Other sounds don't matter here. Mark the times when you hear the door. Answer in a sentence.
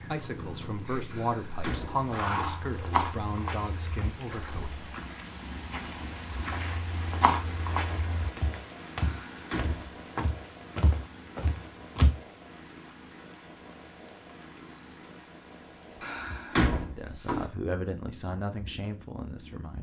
The door can be heard from 1.1 to 2.5 s, from 8.9 to 9.9 s and from 16.0 to 17.4 s.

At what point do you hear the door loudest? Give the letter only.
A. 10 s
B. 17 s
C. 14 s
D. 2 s
B.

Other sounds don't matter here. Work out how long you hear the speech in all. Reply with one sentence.
The speech can be heard for 8 seconds in total.